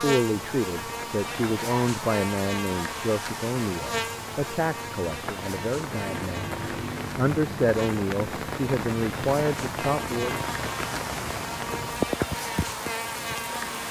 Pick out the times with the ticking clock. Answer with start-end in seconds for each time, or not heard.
not heard.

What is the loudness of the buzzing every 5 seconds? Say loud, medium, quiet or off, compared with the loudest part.
loud, medium, loud.